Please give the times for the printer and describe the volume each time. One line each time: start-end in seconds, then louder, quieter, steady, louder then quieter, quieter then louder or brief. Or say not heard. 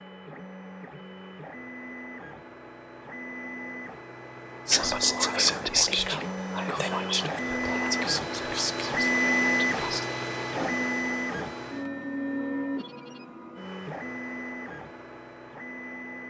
0.0-16.2 louder then quieter.